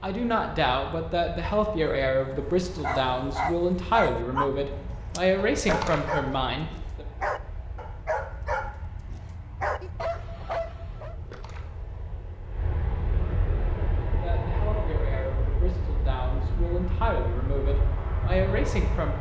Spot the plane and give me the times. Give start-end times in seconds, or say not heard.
0.0-19.1.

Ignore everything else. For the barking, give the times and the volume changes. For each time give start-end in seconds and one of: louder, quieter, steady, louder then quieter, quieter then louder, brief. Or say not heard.
1.8-11.2 steady.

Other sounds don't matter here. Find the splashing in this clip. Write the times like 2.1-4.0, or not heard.
5.5-6.4, 11.1-11.9.